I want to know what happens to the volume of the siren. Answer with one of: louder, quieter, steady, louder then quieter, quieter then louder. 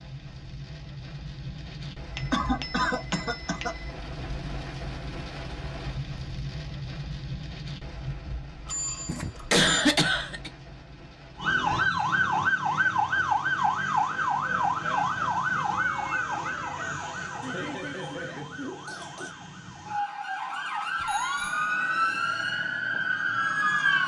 quieter then louder.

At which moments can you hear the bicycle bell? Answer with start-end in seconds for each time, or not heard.
2.1-3.9, 8.7-9.7, 21.0-21.6.